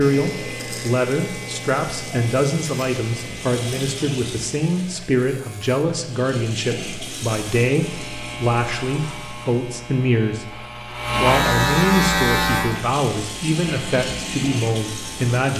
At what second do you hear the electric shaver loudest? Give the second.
12 s.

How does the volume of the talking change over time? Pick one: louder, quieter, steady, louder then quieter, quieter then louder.
steady.